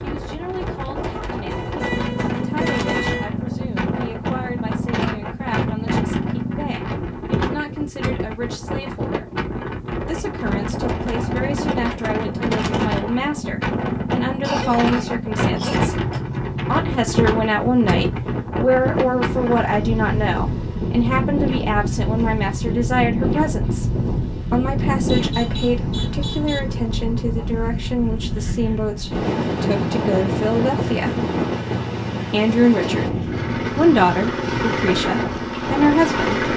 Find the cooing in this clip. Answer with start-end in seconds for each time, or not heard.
not heard.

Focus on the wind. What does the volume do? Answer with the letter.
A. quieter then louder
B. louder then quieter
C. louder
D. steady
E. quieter
D.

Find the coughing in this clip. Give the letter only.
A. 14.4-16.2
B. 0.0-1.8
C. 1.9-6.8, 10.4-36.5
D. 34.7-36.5
A.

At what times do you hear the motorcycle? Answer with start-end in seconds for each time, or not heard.
1.9-6.8, 10.4-36.5.